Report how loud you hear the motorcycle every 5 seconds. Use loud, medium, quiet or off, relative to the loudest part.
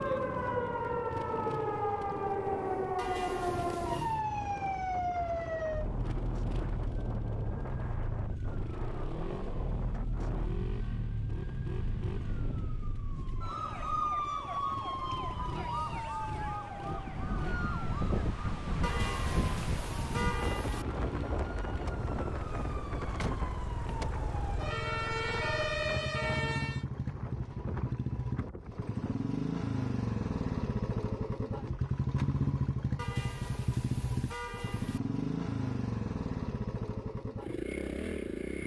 quiet, quiet, quiet, medium, medium, loud, loud, loud.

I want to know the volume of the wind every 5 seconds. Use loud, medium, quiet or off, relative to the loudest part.
medium, medium, medium, loud, loud, medium, off, off.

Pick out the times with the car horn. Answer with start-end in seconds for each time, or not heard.
3.0-4.2, 18.8-20.9, 33.0-35.0.